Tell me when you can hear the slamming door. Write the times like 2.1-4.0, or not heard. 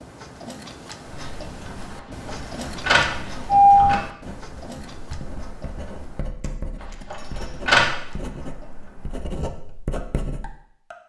not heard.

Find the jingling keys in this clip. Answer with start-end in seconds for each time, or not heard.
2.2-4.0, 6.8-7.9.